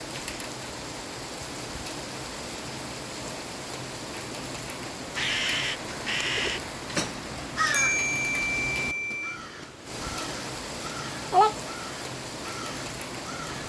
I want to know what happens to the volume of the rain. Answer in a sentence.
The volume of the rain stays about the same.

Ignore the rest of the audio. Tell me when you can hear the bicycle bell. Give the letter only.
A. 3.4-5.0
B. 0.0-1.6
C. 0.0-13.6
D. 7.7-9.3
D.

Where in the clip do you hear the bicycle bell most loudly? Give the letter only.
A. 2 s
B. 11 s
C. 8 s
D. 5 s
C.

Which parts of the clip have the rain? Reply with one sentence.
You can hear the rain from 0.0 to 13.6 s.